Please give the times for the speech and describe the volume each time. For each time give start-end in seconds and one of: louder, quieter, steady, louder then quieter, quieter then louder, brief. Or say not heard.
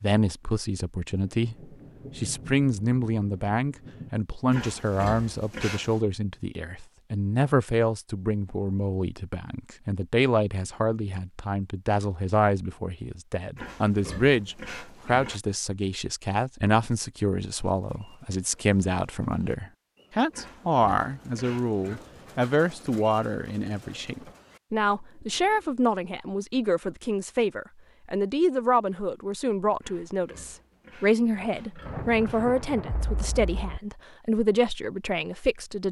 0.0-35.8 steady.